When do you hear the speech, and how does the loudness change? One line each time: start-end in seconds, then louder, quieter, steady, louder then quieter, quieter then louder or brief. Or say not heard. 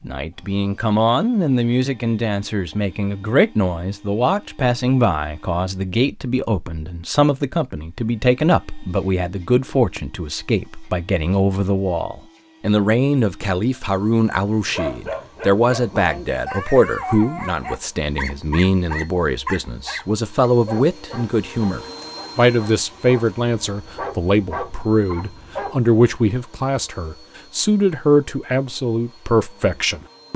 0.0-30.3 steady.